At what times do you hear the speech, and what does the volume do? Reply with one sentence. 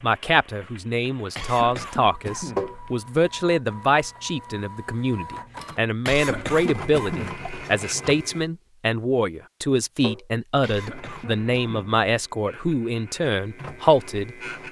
The speech can be heard from 0.0 to 14.3 s, at a steady volume.